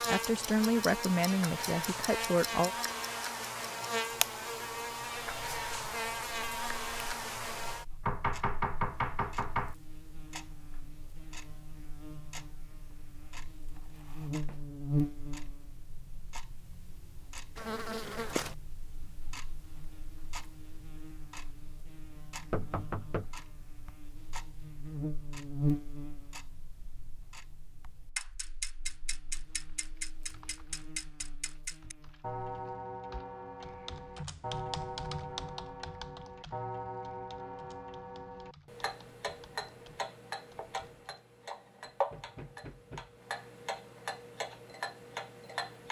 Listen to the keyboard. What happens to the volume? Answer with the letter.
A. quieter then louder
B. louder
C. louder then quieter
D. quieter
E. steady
C.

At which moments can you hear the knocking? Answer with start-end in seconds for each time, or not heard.
8.0-9.8, 22.5-23.4, 41.9-43.2.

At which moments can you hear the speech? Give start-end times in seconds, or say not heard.
0.1-2.8.